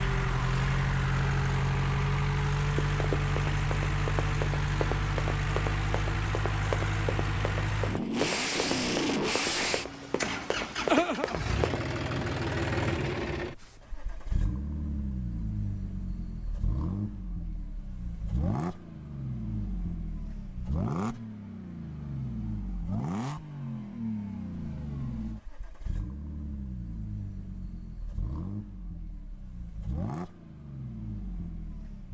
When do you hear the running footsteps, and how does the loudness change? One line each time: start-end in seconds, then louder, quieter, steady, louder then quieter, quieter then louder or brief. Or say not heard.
2.6-11.9 steady.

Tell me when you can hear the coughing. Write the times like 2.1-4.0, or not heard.
not heard.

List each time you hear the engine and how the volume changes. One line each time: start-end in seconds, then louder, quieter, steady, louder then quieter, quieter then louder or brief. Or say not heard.
0.0-32.1 quieter.